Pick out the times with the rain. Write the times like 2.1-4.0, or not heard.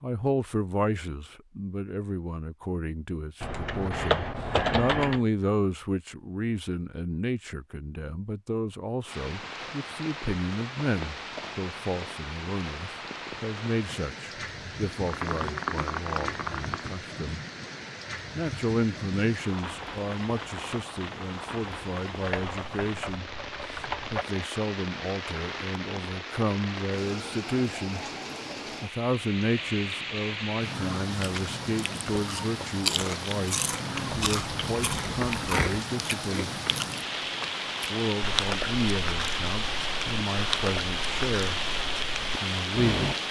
9.1-43.2.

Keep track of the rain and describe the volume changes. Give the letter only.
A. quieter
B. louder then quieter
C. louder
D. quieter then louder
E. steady
C.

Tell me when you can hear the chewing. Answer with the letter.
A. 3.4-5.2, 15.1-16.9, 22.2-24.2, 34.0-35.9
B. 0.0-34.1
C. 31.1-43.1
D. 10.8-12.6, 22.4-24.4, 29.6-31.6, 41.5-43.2
C.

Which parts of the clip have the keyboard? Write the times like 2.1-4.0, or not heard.
3.4-5.2, 15.1-16.9, 22.2-24.2, 34.0-35.9.